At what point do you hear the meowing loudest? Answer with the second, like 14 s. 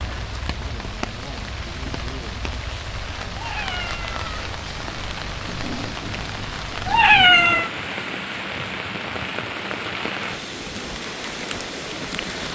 7 s.